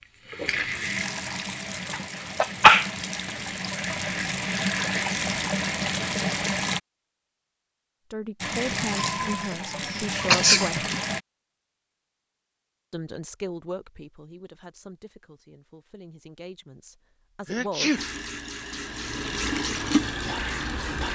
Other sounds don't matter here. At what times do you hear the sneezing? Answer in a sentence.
The sneezing can be heard from 1.9 to 2.9 s, from 8.9 to 10.7 s and from 17.4 to 18.0 s.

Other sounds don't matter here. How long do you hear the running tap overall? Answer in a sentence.
The running tap can be heard for 13 seconds in total.